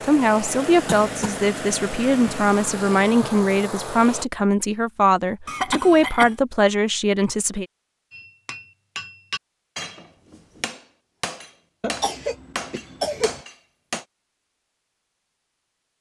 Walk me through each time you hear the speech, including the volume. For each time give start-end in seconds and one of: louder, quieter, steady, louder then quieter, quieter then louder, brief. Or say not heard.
0.0-7.7 steady.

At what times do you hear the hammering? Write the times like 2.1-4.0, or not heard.
8.1-14.1.